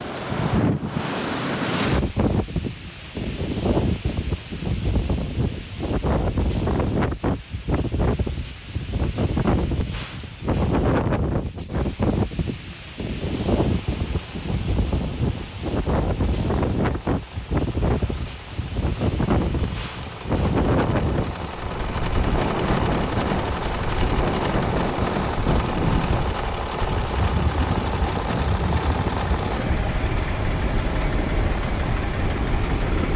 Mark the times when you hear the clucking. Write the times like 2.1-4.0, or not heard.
not heard.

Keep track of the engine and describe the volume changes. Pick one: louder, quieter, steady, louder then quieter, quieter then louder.
louder.